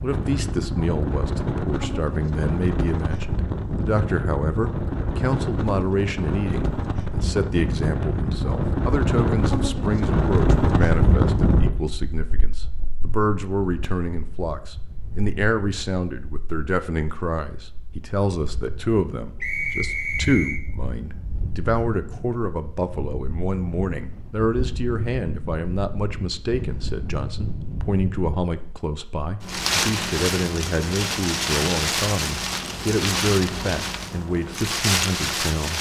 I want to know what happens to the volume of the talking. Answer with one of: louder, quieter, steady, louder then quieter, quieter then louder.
steady.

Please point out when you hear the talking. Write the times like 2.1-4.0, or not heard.
0.0-35.7.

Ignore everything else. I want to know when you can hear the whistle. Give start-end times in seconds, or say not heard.
19.4-20.6.